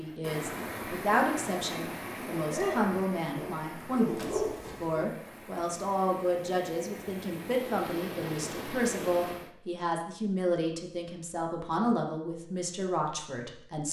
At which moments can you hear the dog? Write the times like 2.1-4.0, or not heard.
2.4-5.1.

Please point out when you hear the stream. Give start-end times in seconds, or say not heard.
0.0-9.5.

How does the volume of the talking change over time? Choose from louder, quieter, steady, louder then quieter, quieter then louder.
steady.